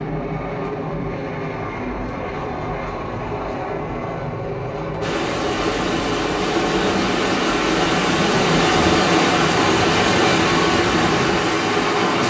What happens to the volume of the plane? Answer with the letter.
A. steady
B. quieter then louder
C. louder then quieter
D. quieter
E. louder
A.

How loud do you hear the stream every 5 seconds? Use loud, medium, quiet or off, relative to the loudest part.
off, loud, loud.